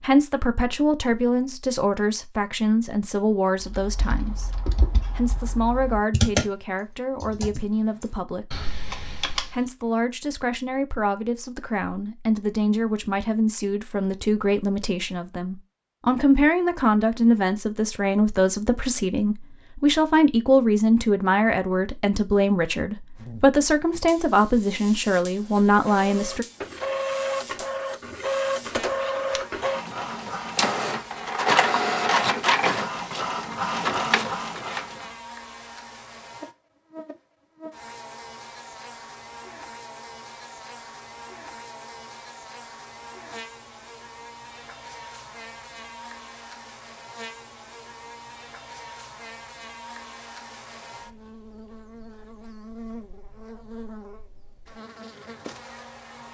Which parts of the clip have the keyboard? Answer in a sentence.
The keyboard can be heard from 3.6 to 9.6 s.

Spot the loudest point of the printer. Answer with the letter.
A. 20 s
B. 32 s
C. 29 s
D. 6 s
B.